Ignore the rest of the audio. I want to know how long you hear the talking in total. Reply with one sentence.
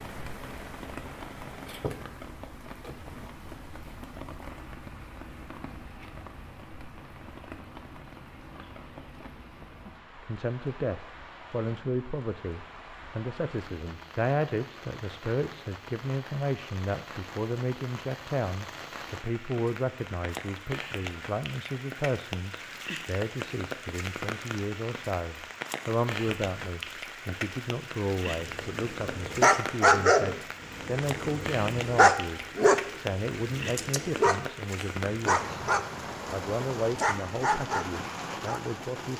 The talking can be heard for 28 seconds in total.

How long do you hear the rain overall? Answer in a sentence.
You can hear the rain for 39 seconds altogether.